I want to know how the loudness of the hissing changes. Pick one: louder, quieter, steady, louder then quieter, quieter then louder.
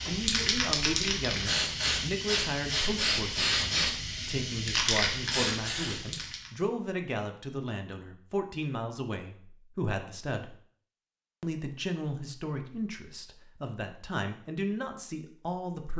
steady.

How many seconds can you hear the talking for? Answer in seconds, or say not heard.
15 s.